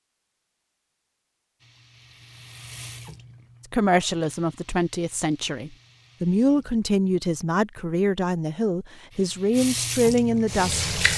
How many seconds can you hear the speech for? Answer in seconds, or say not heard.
7 s.